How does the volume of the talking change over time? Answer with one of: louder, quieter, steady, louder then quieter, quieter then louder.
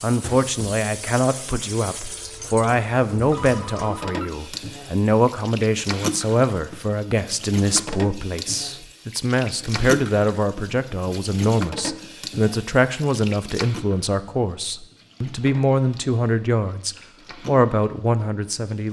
steady.